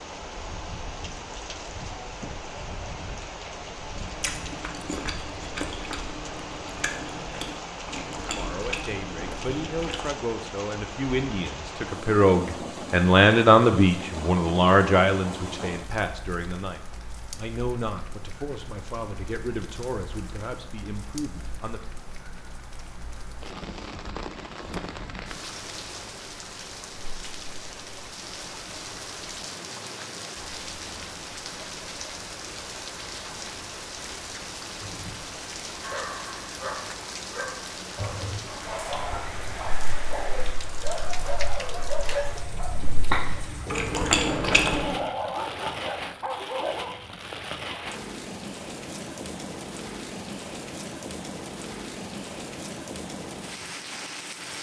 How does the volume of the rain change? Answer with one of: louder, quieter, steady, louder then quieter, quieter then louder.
steady.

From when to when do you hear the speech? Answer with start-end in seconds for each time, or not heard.
8.2-21.8.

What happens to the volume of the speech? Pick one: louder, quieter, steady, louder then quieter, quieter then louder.
louder then quieter.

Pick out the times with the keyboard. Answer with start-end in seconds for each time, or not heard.
not heard.